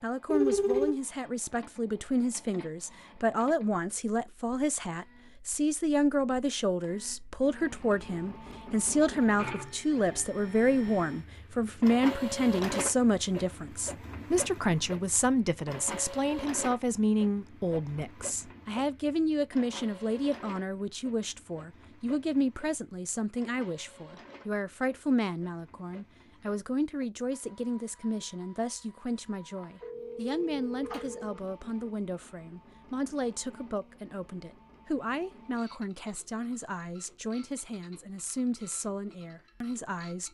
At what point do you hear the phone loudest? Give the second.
1 s.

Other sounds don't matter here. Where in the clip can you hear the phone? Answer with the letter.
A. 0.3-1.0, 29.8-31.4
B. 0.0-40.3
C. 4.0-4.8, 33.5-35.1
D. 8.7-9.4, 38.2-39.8
A.